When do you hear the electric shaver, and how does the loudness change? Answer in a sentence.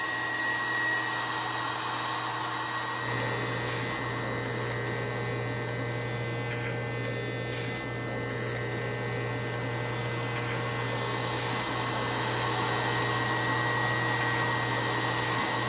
The electric shaver can be heard from 0.0 to 15.6 s, getting louder.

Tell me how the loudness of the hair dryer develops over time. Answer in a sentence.
The volume of the hair dryer goes down, then up.